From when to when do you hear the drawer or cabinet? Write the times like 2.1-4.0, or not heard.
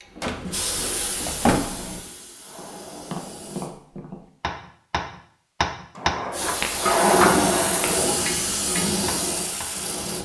0.2-2.0, 6.0-7.4.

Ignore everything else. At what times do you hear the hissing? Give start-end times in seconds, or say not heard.
0.0-3.7, 6.3-10.1.